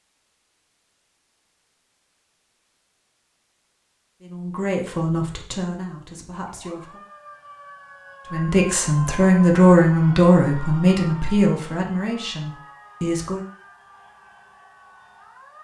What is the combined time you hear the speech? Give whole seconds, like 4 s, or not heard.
8 s.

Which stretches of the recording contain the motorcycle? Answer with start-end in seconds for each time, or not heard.
not heard.